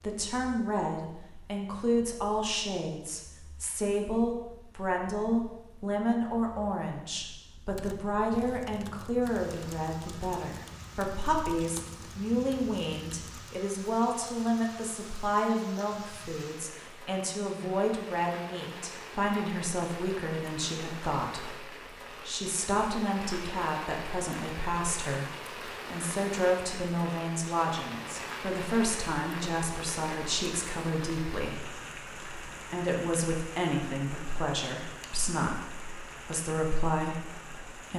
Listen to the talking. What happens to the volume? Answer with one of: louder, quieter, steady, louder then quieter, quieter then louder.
steady.